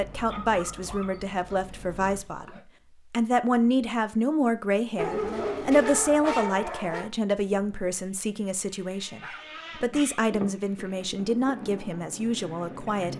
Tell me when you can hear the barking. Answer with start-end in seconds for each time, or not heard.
0.2-2.6, 5.0-7.1, 9.2-10.4.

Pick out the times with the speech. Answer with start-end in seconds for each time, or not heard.
0.0-13.1.